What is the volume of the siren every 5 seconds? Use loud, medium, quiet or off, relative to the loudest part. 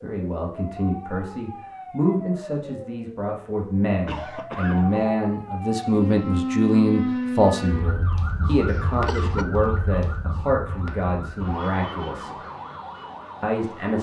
medium, loud, medium.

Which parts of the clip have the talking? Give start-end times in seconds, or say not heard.
0.0-12.3, 13.4-13.9.